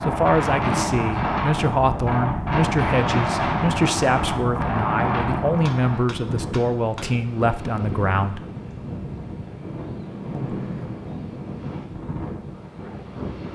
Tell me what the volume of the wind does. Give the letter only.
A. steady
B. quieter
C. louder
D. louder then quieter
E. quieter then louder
B.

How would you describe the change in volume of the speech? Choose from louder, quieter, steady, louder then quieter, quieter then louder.
steady.